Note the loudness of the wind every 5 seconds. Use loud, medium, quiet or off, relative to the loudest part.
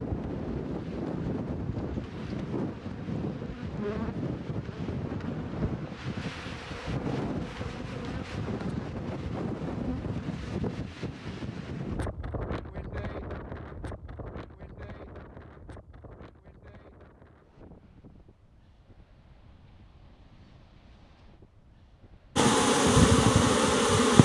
loud, loud, loud, quiet, quiet.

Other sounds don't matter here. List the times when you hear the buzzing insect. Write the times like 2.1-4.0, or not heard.
0.0-10.8, 22.4-24.2.